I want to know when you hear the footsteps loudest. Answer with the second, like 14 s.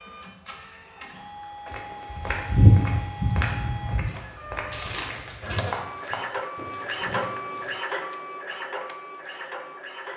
3 s.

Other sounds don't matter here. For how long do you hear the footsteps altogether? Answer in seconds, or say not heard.
6 s.